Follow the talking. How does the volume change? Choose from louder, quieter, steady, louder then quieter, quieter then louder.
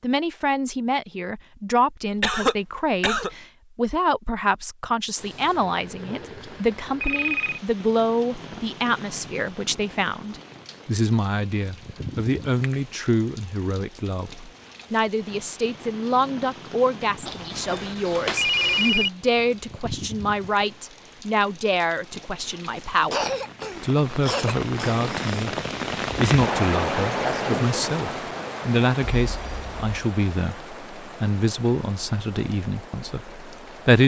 steady.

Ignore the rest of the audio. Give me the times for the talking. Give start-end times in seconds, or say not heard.
0.0-25.6, 26.1-34.0.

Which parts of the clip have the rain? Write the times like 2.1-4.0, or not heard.
5.2-34.0.